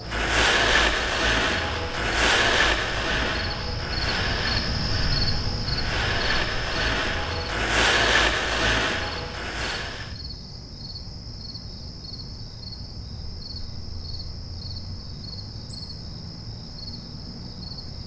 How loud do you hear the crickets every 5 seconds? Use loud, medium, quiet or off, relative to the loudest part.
loud, loud, medium, medium.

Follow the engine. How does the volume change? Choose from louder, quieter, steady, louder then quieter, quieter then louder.
quieter then louder.